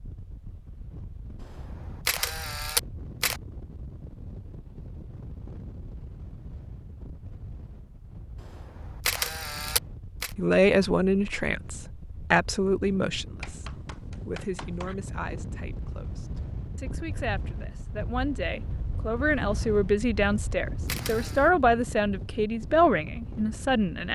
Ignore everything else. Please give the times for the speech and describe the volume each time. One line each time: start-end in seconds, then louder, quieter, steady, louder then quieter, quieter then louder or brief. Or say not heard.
10.3-24.0 quieter then louder.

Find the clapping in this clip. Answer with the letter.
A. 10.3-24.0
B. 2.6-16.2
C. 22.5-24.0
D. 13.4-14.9
D.